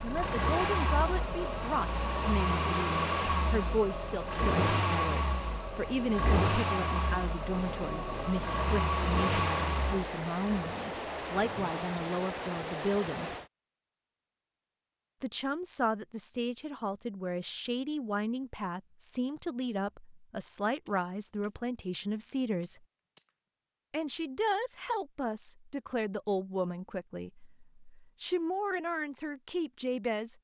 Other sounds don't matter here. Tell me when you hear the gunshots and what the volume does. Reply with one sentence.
You can hear the gunshots from 8.8 to 13.5 s, at a steady volume; and briefly from 20.9 to 23.3 s.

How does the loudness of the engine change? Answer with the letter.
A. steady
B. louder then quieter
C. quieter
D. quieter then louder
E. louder
A.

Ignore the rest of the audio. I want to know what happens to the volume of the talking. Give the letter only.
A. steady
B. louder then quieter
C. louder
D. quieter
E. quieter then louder
A.